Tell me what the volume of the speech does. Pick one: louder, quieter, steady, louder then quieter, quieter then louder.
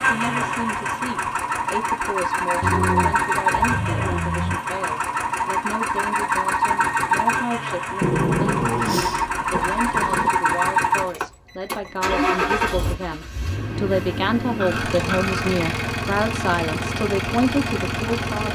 louder.